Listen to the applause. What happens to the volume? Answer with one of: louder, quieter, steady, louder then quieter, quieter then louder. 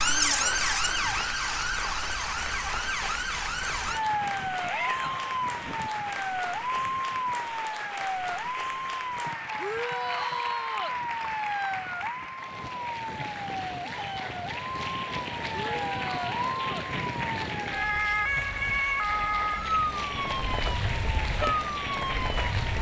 steady.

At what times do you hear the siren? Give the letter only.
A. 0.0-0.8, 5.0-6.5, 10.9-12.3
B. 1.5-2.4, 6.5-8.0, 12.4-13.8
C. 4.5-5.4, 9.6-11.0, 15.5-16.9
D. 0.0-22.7
D.